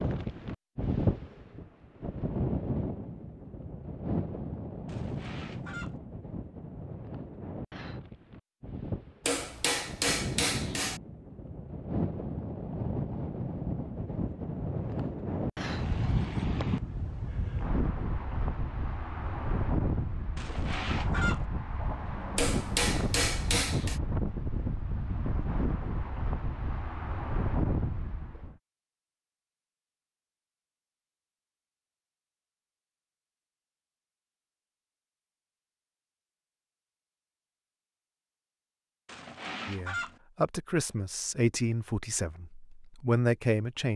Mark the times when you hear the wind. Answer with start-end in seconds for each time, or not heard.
0.0-28.6.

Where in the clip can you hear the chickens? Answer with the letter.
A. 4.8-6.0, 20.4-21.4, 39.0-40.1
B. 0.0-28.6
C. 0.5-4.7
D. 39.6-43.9
A.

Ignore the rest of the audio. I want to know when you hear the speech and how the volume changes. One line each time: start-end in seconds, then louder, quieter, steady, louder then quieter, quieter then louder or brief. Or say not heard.
39.6-43.9 quieter then louder.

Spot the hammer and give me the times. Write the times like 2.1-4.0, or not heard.
9.2-11.0, 22.4-24.0.